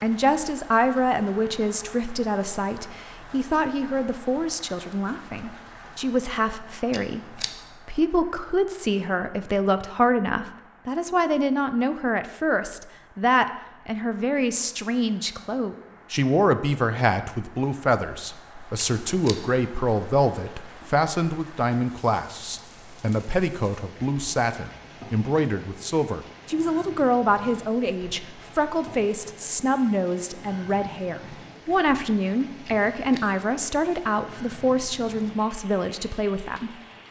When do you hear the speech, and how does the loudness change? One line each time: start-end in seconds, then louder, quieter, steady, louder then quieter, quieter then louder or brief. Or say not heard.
0.0-36.8 steady.